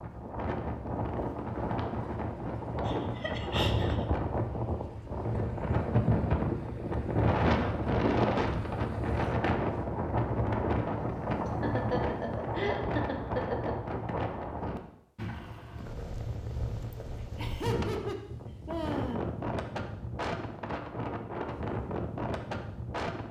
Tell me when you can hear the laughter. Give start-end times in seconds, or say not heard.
2.9-4.0, 11.6-13.8, 17.1-19.2.